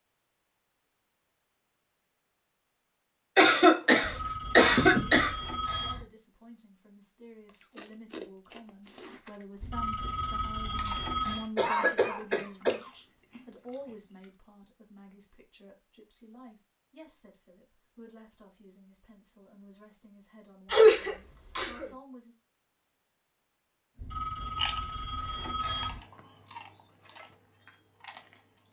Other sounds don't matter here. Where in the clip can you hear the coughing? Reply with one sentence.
The coughing can be heard from 3.4 to 5.3 s, from 11.6 to 12.8 s and from 20.7 to 21.9 s.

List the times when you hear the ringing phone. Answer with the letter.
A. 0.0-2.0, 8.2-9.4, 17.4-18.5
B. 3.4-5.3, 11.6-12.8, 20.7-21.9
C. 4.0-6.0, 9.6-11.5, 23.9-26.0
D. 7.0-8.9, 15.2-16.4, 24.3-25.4
C.